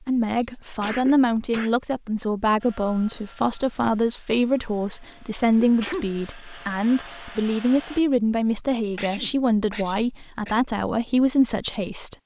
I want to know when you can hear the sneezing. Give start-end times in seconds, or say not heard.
0.3-1.7, 5.5-6.1, 8.9-10.6.